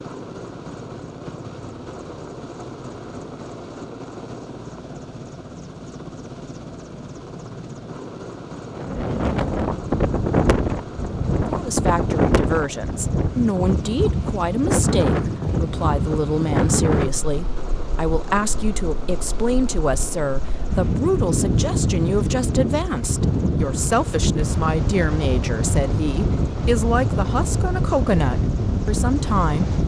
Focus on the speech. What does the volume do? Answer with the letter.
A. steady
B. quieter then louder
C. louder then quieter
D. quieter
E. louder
A.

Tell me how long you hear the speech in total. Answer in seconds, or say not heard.
18 s.